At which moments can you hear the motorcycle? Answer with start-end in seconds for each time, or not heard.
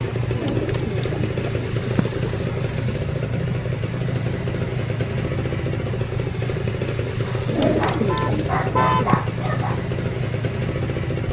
0.0-11.2.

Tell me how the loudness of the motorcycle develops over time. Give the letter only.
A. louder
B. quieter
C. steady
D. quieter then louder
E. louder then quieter
C.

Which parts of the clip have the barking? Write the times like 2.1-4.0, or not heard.
7.2-9.8.